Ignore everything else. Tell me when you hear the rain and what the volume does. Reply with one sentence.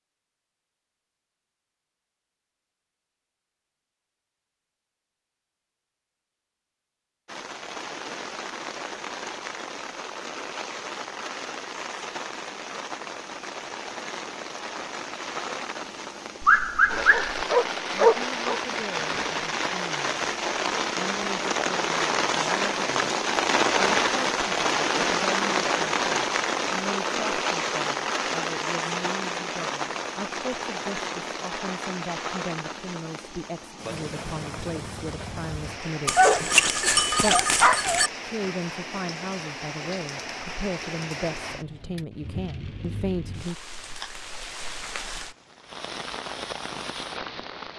The rain can be heard from 7.2 to 47.7 s, getting louder then quieter.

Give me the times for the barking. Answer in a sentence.
You can hear the barking from 16.4 to 18.6 s and from 36.0 to 38.1 s.